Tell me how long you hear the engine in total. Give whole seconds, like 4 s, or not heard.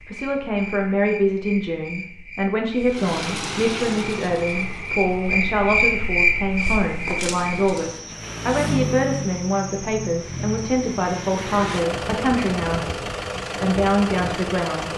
12 s.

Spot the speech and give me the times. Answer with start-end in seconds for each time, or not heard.
0.1-14.9.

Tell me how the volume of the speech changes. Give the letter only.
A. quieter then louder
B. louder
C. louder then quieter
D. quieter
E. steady
E.